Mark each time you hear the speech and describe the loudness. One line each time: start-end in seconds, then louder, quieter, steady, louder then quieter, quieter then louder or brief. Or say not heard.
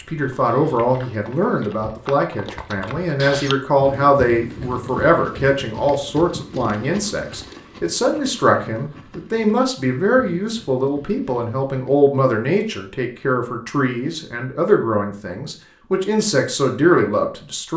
0.0-17.7 steady.